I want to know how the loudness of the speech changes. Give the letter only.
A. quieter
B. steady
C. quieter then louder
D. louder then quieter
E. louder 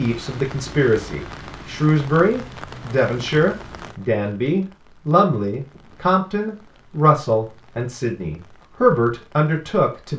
B.